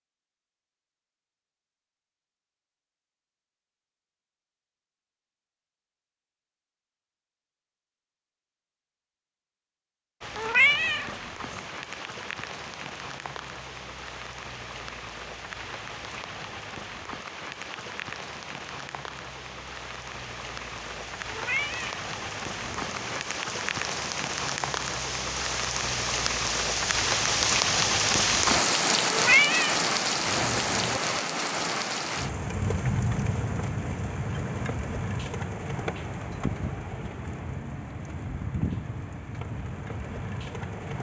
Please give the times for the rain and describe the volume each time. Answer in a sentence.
You can hear the rain from 10.2 to 40.9 s, getting louder then quieter.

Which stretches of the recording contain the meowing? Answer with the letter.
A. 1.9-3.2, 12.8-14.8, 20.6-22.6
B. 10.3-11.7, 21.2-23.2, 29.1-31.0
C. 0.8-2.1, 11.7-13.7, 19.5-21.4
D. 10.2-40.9
B.